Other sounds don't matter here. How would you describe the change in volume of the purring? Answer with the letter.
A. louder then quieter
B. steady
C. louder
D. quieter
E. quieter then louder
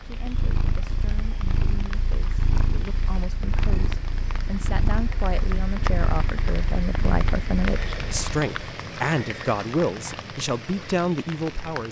B.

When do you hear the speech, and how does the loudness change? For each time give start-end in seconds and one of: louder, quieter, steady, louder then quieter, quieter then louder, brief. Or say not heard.
0.1-11.8 louder.